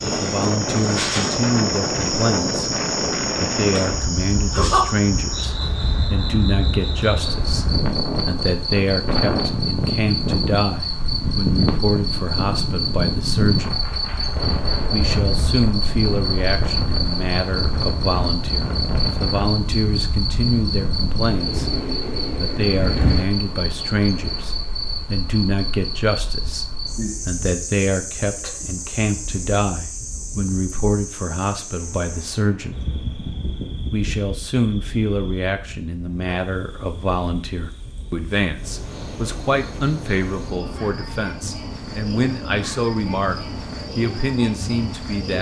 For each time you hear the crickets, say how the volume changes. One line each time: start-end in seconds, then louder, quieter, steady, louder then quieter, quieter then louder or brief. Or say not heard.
0.0-45.3 quieter.